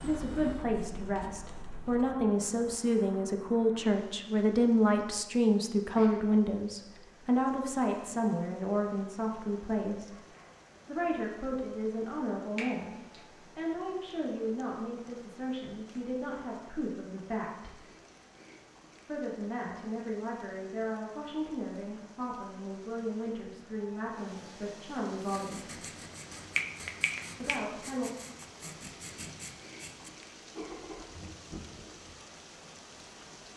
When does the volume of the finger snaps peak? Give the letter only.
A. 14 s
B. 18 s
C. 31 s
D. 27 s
D.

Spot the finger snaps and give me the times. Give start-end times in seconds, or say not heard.
12.6-13.2, 26.6-27.6.